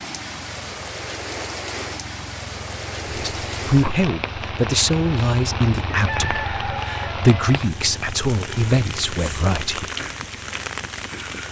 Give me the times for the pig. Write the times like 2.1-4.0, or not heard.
not heard.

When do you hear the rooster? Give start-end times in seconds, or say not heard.
5.9-7.6.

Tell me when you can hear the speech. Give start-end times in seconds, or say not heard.
3.0-9.9.